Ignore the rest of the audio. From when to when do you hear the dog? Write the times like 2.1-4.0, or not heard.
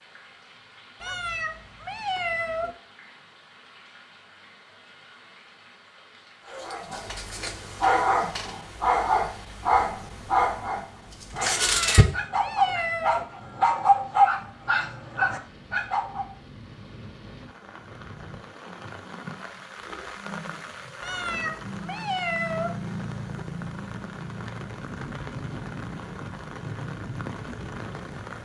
6.5-16.3.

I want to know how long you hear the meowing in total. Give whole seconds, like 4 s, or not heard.
5 s.